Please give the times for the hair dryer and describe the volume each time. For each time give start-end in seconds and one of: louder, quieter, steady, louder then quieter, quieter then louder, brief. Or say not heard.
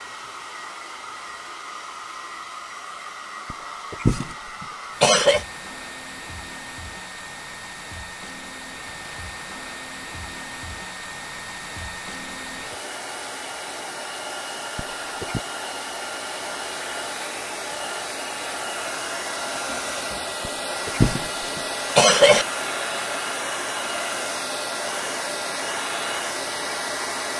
0.0-27.3 louder.